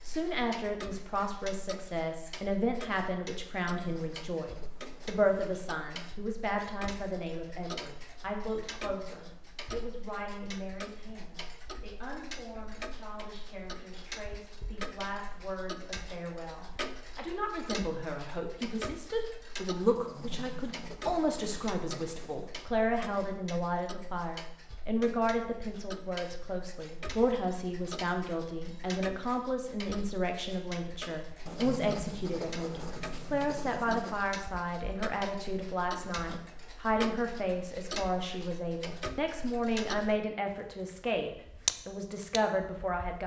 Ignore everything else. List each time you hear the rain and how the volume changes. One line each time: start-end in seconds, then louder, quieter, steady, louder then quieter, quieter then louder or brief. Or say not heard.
not heard.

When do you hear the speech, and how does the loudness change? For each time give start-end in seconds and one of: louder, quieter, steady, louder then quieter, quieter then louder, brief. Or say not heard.
0.0-43.2 quieter then louder.